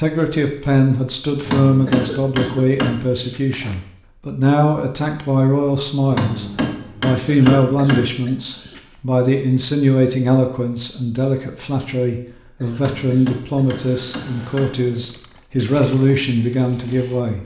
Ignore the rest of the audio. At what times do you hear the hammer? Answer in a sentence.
You can hear the hammer from 1.4 to 3.1 s, from 6.1 to 8.1 s and from 12.8 to 14.8 s.